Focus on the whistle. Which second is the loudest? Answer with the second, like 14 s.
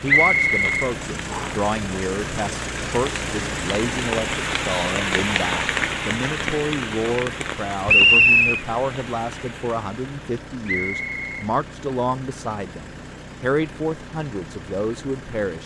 8 s.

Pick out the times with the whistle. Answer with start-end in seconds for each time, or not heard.
0.1-1.5, 7.8-8.6, 10.7-11.4.